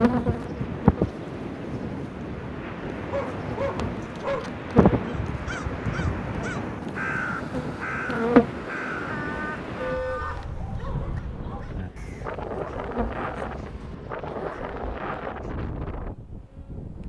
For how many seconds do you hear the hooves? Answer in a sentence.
The hooves can't be heard in this clip.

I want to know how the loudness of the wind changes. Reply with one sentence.
The volume of the wind stays about the same.